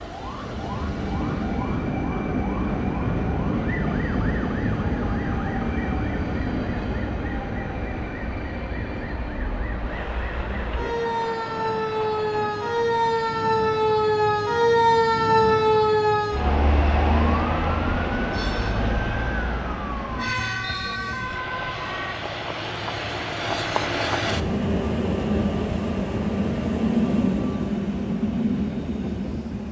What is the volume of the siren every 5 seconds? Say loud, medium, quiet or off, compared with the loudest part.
quiet, quiet, loud, loud, medium, off.